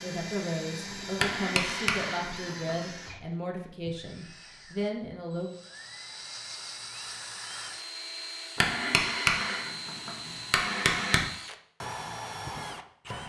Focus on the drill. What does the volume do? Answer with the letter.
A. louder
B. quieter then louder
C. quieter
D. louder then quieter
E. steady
B.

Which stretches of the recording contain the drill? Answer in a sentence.
The drill can be heard from 0.0 to 13.2 s.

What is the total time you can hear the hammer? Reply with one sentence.
You can hear the hammer for 4 seconds altogether.